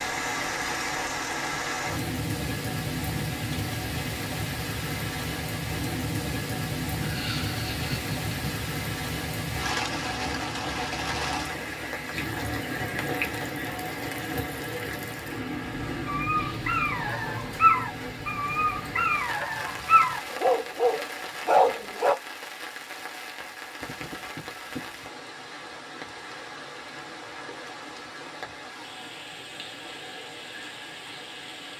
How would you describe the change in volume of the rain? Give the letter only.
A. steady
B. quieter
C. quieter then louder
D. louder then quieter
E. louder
B.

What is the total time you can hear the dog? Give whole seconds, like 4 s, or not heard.
6 s.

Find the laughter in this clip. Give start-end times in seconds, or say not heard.
7.0-8.6.